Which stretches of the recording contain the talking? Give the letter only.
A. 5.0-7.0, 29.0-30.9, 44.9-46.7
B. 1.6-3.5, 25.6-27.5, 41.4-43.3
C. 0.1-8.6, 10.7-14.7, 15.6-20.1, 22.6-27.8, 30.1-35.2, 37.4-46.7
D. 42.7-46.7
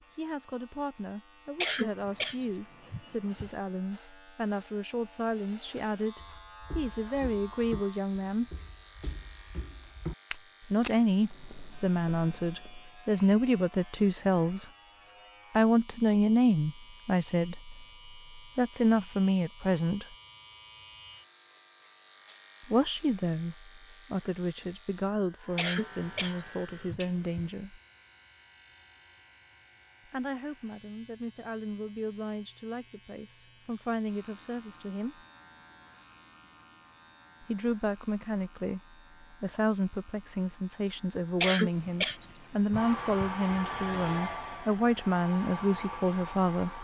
C.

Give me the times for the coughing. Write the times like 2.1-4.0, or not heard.
1.6-3.5, 25.6-27.5, 41.4-43.3.